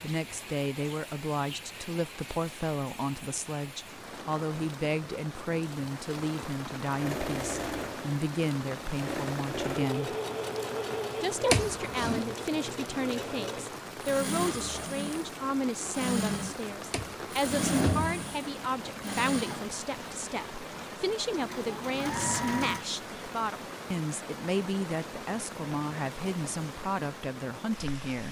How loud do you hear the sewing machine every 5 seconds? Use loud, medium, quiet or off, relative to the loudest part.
off, loud, loud, loud, loud, off.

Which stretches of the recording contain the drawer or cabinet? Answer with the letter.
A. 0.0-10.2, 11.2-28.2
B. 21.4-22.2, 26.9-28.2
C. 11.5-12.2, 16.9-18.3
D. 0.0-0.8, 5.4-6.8
C.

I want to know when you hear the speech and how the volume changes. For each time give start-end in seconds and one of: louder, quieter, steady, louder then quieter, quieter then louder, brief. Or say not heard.
0.0-10.2 steady
11.2-28.2 steady.